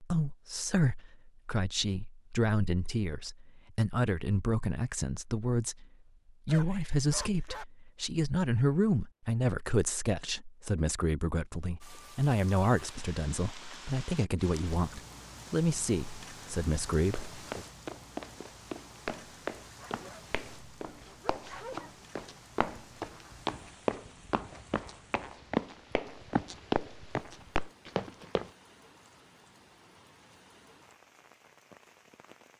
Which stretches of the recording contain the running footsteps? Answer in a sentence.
You can hear the running footsteps from 16.9 to 28.5 s.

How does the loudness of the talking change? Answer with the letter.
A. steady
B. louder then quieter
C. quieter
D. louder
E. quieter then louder
A.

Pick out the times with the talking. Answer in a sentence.
You can hear the talking from 0.0 to 5.8 s and from 6.5 to 17.6 s.